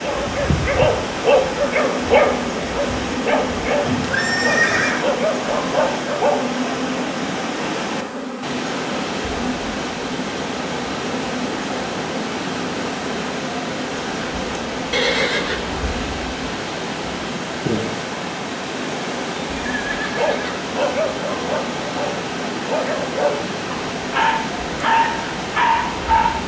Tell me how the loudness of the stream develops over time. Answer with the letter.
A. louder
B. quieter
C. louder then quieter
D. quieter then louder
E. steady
E.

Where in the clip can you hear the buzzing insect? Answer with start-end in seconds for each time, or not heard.
0.1-26.4.